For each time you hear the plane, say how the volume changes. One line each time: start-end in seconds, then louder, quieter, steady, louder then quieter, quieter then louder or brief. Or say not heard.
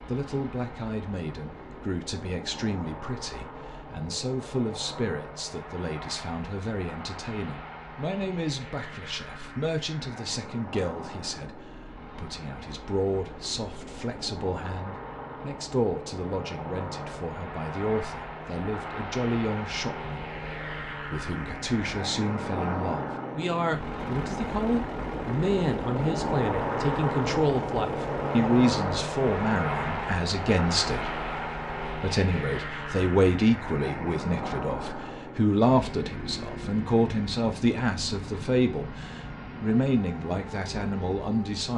0.0-41.7 louder then quieter.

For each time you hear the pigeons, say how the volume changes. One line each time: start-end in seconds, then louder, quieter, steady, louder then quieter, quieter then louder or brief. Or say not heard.
not heard.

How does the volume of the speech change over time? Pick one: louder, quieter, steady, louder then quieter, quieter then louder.
louder.